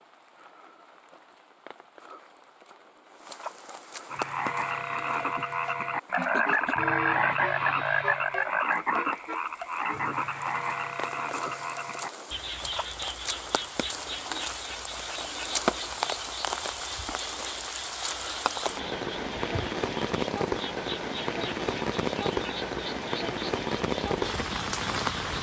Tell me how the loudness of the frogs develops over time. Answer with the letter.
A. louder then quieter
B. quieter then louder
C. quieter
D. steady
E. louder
C.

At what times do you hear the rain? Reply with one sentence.
The rain can be heard from 0.0 to 25.3 s.